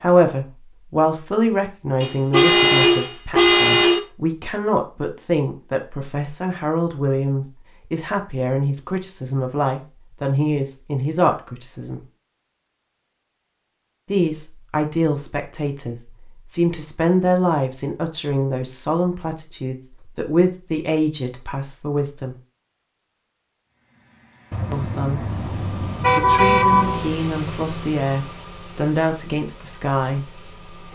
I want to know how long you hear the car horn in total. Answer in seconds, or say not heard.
5 s.